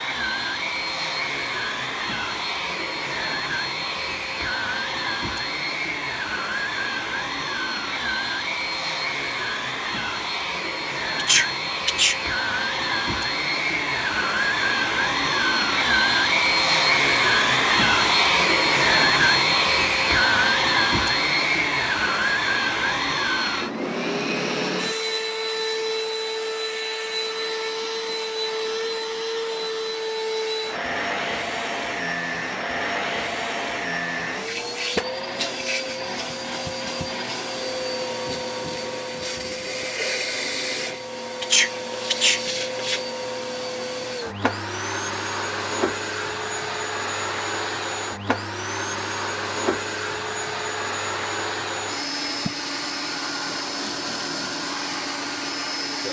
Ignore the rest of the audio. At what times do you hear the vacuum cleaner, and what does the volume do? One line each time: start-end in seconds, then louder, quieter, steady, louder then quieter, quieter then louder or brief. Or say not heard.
0.0-56.0 louder then quieter.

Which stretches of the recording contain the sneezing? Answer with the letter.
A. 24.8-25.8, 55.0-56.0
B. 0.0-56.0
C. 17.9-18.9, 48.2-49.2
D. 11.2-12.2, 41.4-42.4
D.